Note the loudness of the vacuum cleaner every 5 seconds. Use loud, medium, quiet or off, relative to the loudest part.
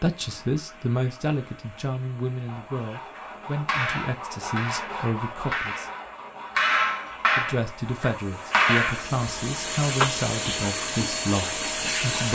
quiet, medium, loud.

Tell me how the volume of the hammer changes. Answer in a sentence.
The loudness of the hammer goes up.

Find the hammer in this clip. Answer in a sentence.
The hammer can be heard from 3.1 to 9.1 s.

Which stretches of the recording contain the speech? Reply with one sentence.
You can hear the speech from 0.0 to 5.8 s and from 7.3 to 12.2 s.